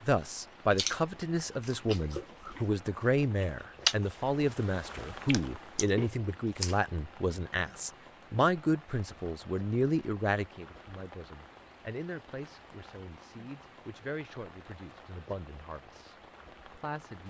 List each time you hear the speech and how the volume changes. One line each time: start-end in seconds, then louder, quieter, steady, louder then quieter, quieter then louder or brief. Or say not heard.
0.0-17.2 quieter.